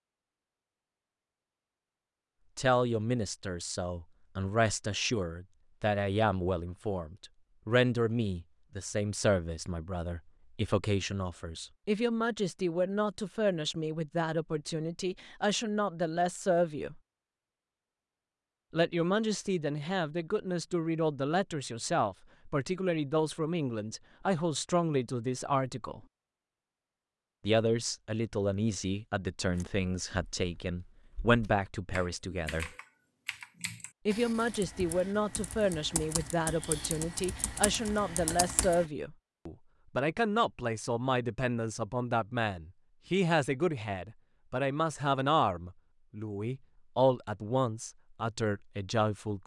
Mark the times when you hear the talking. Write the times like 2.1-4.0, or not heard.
2.5-17.0, 18.7-26.0, 27.4-32.7, 34.0-49.4.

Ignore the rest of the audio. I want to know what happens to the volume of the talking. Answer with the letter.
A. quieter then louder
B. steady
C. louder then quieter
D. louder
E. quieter
B.